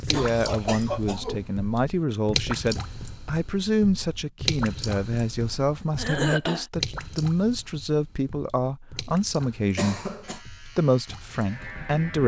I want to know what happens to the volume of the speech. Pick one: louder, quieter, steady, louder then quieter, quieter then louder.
steady.